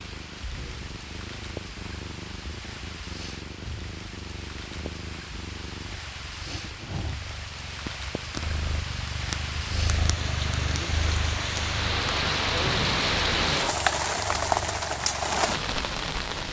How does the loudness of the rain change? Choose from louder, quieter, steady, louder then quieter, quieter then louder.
louder.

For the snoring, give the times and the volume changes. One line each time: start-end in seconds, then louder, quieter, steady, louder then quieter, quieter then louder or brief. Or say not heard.
not heard.